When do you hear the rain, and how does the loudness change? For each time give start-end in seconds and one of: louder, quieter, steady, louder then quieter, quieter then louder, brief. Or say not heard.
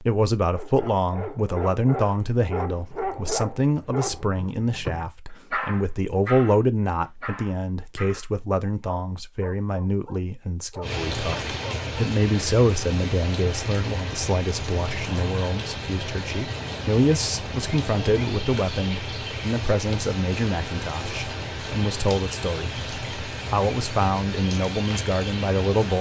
10.8-25.9 steady.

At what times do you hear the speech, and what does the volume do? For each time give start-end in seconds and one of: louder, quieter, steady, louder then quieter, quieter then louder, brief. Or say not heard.
0.0-25.9 steady.